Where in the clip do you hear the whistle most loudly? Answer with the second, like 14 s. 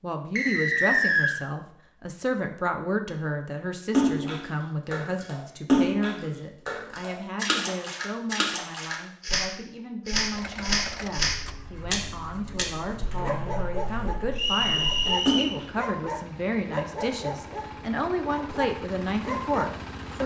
1 s.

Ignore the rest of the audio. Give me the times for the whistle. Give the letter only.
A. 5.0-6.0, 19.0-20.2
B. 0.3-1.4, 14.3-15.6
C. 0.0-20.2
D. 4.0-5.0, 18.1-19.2
B.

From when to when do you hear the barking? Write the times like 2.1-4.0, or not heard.
13.2-20.2.